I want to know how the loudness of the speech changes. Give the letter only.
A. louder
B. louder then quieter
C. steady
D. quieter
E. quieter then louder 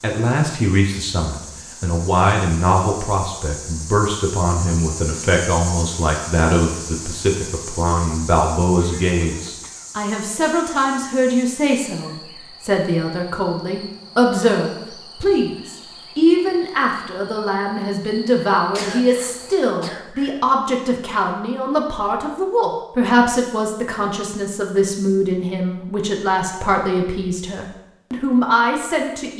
C.